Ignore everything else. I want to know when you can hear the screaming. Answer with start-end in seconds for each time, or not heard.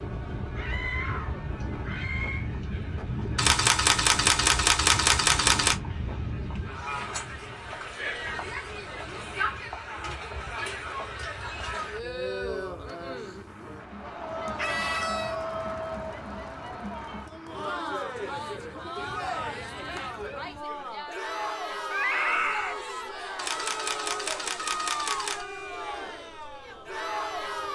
0.6-2.5, 14.6-15.3, 21.9-22.8.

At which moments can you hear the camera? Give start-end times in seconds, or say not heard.
3.4-5.8, 23.4-25.4.